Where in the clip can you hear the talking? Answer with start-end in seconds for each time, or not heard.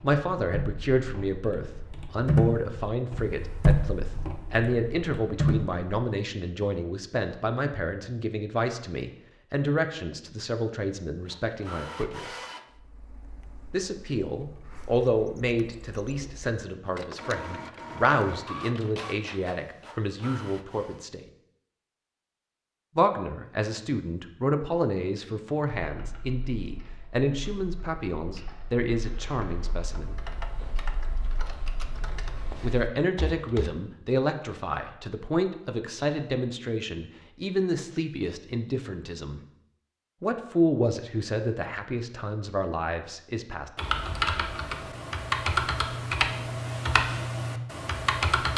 0.0-12.3, 13.7-21.2, 22.9-30.2, 32.6-39.4, 40.2-43.7.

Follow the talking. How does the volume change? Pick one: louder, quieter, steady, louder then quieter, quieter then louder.
steady.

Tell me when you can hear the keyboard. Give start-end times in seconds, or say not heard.
0.0-5.8, 25.9-33.7, 43.8-48.5.